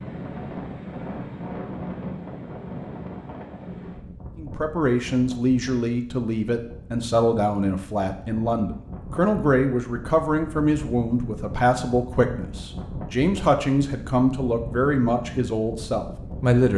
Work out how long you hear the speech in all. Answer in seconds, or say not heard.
12 s.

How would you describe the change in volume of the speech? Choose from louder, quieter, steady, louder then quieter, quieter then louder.
steady.